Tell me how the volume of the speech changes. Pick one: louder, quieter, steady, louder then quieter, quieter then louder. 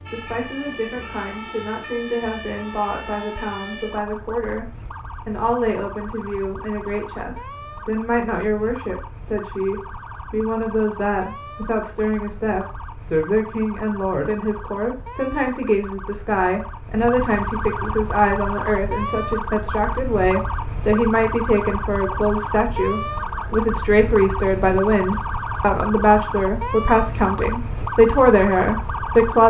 louder.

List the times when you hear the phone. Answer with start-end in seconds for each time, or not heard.
not heard.